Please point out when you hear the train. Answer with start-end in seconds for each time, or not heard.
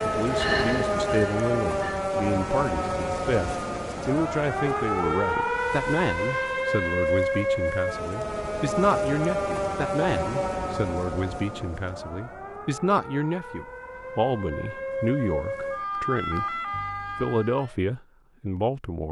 0.1-2.0.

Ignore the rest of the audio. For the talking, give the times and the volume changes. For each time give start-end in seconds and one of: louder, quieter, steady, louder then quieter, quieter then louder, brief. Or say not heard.
0.0-16.6 steady
17.2-19.0 brief.